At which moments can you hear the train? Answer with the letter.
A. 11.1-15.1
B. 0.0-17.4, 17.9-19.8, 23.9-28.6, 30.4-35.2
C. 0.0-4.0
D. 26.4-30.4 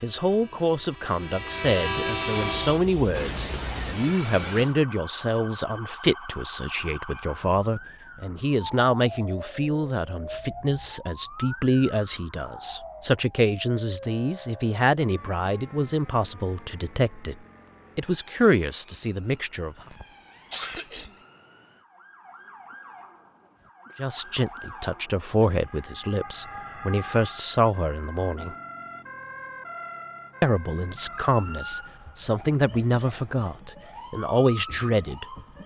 C.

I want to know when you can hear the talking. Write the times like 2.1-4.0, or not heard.
0.0-17.4, 17.9-19.8, 23.9-28.6, 30.4-35.2.